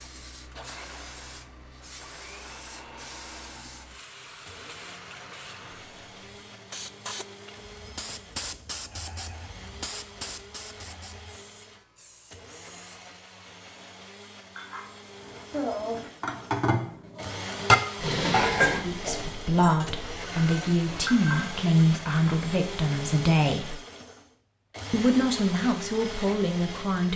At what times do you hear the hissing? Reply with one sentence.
The hissing can be heard from 0.0 to 12.9 s.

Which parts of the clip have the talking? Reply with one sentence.
The talking can be heard from 18.8 to 23.8 s and from 24.9 to 27.1 s.